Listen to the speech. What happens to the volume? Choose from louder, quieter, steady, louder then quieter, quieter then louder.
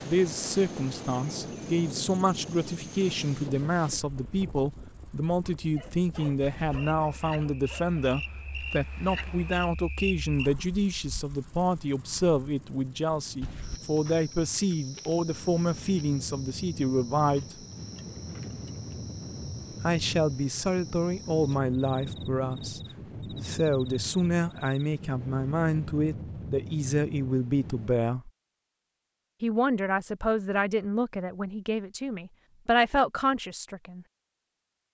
steady.